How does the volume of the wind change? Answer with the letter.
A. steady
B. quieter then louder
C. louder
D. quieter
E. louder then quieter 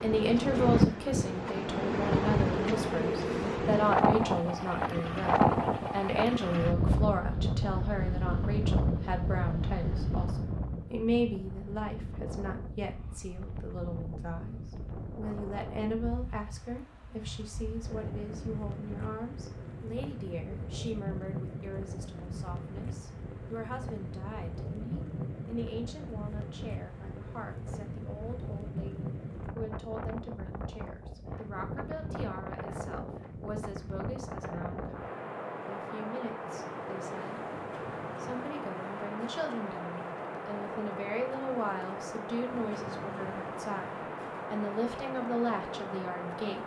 D.